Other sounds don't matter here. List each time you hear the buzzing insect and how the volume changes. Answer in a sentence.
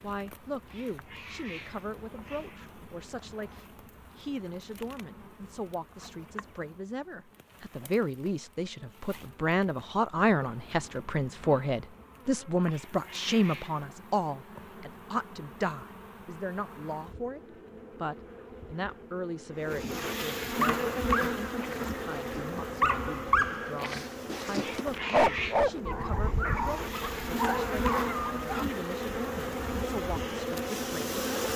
You can hear the buzzing insect from 0.0 to 31.5 s, getting louder.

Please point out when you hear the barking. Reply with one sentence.
The barking can be heard from 20.6 to 28.6 s.